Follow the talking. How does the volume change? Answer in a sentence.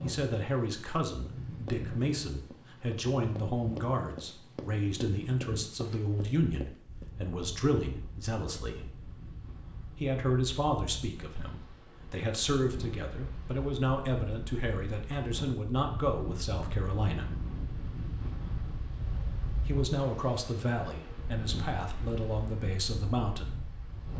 The loudness of the talking stays about the same.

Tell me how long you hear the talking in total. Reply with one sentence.
The talking can be heard for 20 seconds in total.